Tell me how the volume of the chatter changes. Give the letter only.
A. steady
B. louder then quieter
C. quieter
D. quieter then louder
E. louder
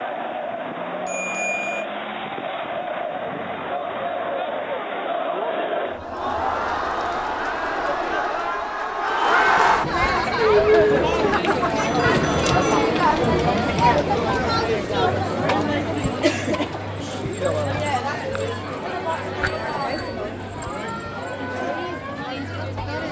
B.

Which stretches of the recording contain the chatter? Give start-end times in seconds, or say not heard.
0.0-23.0.